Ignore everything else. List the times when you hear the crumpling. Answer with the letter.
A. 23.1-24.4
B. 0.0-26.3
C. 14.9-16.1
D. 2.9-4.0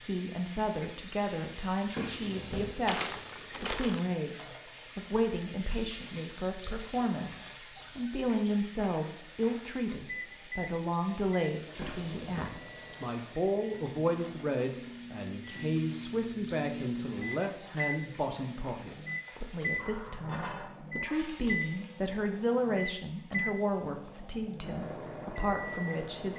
D.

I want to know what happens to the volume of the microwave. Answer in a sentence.
The loudness of the microwave goes up.